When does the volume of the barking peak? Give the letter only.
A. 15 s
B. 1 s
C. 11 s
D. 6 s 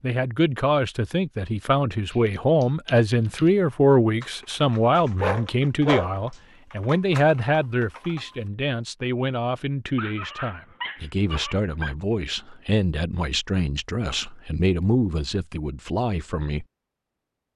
D.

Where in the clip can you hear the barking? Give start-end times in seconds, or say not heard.
5.0-6.4, 9.9-11.9.